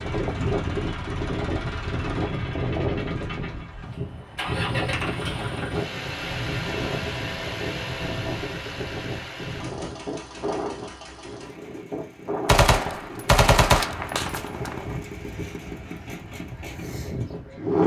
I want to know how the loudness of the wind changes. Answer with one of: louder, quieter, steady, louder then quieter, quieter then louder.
quieter.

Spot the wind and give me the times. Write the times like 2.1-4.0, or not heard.
0.0-17.8.